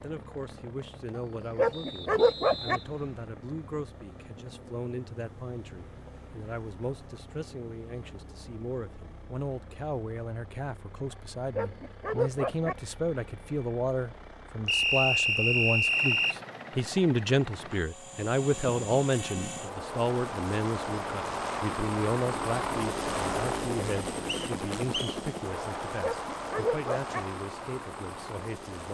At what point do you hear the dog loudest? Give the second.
2 s.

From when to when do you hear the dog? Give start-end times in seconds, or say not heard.
1.6-2.8, 11.6-12.8, 26.0-27.2.